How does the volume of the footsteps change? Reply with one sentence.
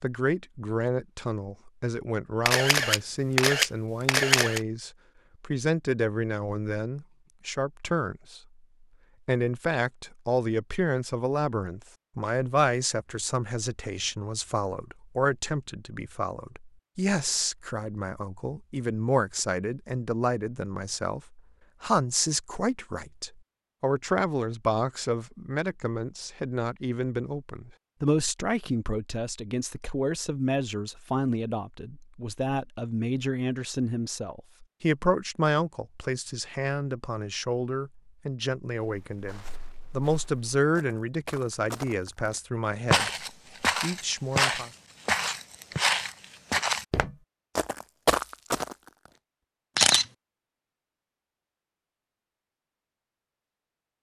The volume of the footsteps goes up.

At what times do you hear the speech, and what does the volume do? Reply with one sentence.
The speech can be heard from 0.0 to 8.4 s, at a steady volume; from 9.2 to 43.1 s, at a steady volume; and briefly from 43.8 to 44.7 s.